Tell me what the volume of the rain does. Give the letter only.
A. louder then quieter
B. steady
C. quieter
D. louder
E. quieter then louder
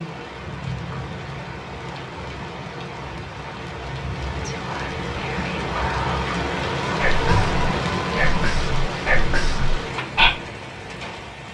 A.